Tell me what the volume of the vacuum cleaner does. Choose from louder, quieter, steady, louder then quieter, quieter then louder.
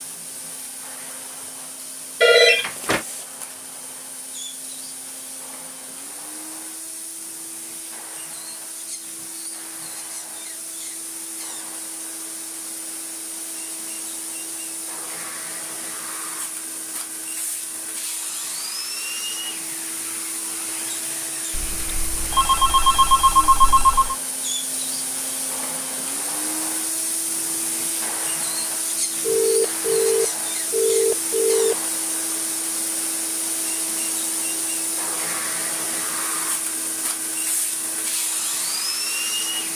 louder.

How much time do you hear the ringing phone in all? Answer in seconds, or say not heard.
6 s.